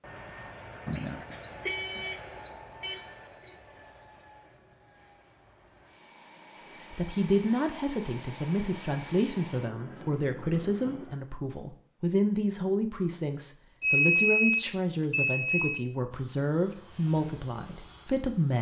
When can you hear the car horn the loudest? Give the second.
2 s.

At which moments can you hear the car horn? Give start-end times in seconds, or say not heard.
1.6-3.5.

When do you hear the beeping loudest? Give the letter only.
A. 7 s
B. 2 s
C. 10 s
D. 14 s
D.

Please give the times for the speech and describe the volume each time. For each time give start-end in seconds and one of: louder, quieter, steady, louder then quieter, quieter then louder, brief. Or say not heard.
6.9-18.5 steady.